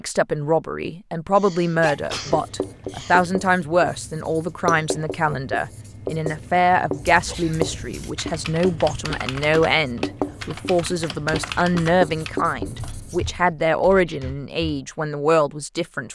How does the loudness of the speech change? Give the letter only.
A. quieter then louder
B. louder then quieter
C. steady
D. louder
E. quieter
C.